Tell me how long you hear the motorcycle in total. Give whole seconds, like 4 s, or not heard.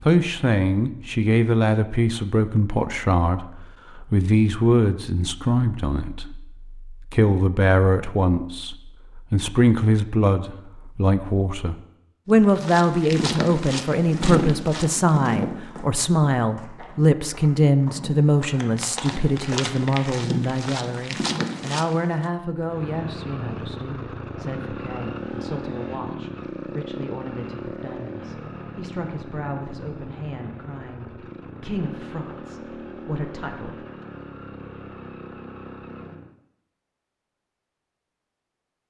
14 s.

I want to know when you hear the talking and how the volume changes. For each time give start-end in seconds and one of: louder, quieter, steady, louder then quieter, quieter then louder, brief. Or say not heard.
0.0-33.8 quieter.